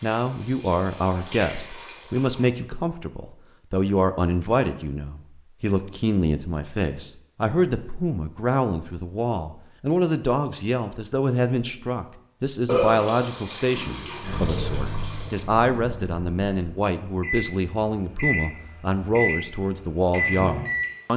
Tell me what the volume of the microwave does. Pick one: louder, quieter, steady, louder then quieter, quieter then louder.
quieter then louder.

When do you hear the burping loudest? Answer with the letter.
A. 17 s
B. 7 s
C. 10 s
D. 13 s
D.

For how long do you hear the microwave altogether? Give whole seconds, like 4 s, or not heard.
7 s.